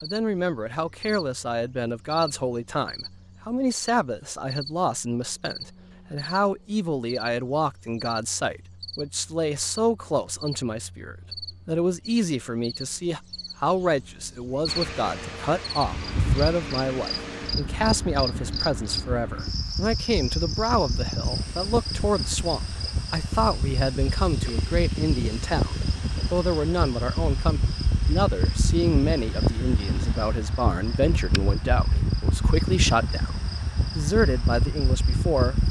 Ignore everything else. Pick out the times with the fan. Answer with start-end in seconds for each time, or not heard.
14.7-35.6.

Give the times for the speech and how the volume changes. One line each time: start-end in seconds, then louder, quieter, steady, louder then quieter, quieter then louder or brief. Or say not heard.
0.0-33.4 steady
34.0-35.6 brief.